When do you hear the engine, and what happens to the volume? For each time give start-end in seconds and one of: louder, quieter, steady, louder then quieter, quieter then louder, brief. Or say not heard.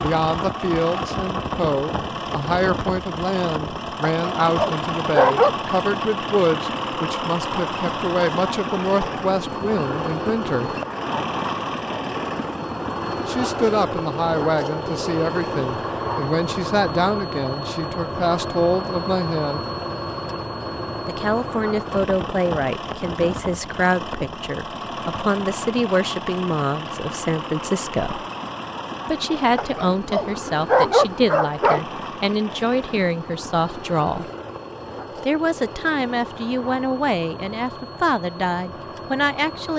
0.0-39.7 quieter.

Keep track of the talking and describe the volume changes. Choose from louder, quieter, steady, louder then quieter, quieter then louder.
steady.